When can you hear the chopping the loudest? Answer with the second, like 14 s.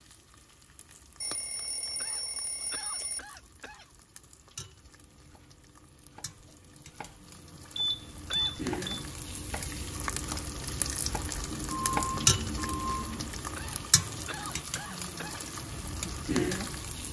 12 s.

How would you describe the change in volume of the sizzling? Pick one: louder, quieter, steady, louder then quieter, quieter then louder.
louder.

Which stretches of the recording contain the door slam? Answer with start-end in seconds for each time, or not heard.
not heard.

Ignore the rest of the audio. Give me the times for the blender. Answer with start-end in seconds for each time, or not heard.
not heard.